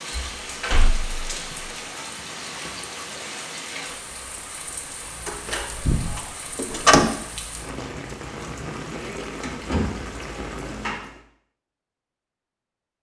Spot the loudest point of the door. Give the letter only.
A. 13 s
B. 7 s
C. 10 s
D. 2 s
B.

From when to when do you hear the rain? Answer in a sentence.
The rain can be heard from 0.0 to 11.2 s.